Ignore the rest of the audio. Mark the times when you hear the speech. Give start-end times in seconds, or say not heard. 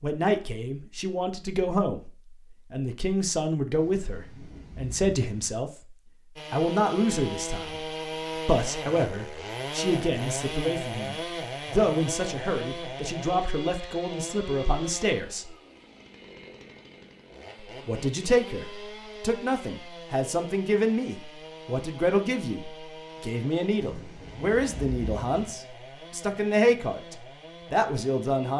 0.0-5.7, 6.5-15.6, 17.9-28.5.